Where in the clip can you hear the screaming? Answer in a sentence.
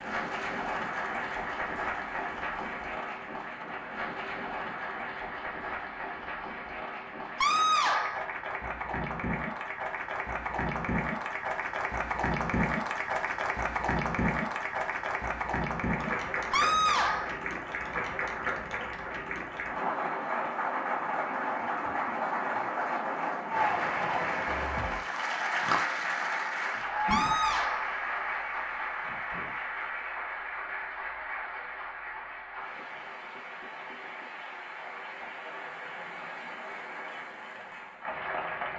The screaming can be heard from 7.4 to 8.2 s, from 16.5 to 17.4 s and from 27.1 to 27.9 s.